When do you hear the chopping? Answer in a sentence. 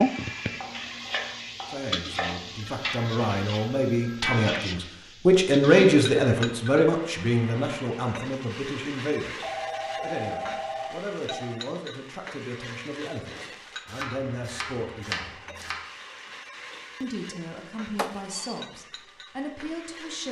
The chopping can be heard from 0.5 to 2.6 s and from 13.8 to 15.8 s.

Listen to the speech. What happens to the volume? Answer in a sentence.
The loudness of the speech goes up, then down.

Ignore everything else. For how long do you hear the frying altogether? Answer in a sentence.
The frying can be heard for 20 seconds in total.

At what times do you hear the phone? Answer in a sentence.
The phone can be heard from 2.5 to 4.3 s, from 9.4 to 11.6 s and from 17.9 to 18.6 s.